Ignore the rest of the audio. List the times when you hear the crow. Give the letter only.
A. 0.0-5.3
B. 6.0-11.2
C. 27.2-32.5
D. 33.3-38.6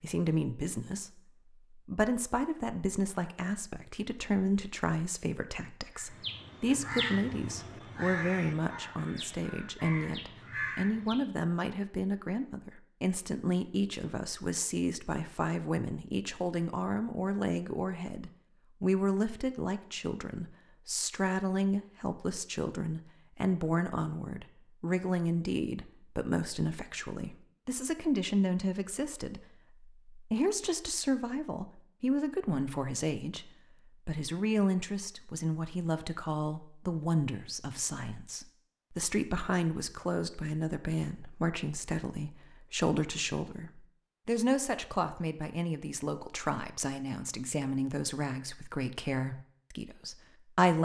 B.